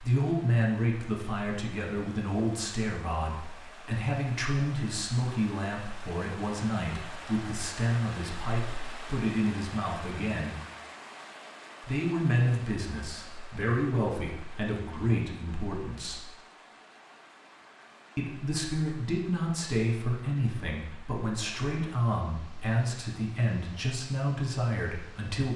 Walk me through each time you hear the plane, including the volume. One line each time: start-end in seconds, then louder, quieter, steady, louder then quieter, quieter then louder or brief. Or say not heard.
not heard.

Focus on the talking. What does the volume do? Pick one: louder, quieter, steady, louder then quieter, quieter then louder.
steady.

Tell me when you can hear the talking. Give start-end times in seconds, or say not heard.
0.0-10.6, 11.8-16.3, 18.1-25.5.